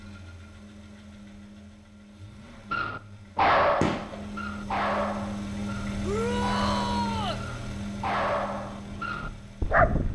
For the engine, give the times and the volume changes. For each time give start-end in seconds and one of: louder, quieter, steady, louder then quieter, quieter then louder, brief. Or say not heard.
0.0-10.0 louder then quieter.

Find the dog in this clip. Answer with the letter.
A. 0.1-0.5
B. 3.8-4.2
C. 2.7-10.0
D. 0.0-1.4
C.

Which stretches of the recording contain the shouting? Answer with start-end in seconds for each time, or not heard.
6.0-7.5.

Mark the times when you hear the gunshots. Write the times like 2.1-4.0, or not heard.
3.8-4.2.